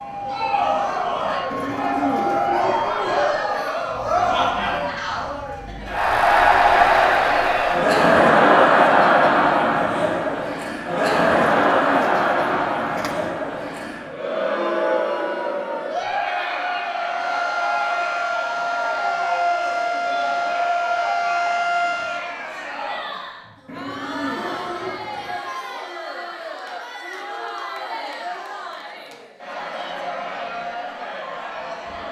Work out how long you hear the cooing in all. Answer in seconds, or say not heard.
5 s.